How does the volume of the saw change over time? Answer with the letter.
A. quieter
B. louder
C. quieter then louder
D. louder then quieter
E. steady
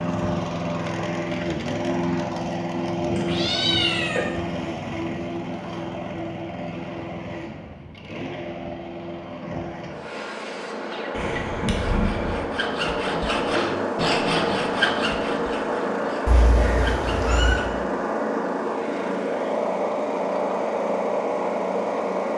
D.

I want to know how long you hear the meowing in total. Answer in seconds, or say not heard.
4 s.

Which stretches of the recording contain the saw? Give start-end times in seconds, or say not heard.
9.9-17.8.